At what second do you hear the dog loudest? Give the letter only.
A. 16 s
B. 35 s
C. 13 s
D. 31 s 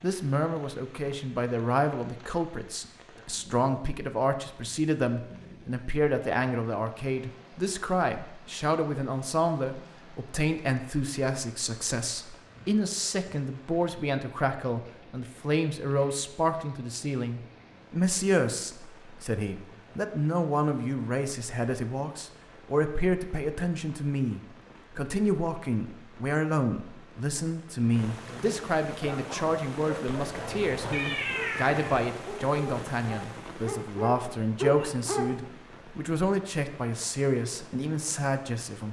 B.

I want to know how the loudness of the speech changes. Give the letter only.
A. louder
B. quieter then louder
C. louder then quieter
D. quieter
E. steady
E.